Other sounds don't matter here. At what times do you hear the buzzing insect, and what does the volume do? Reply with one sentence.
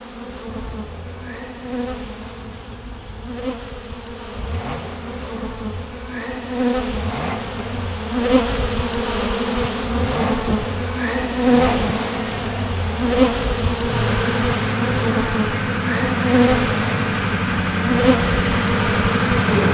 You can hear the buzzing insect from 0.0 to 19.6 s, getting louder.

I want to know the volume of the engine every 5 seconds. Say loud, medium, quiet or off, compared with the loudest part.
quiet, quiet, medium, loud.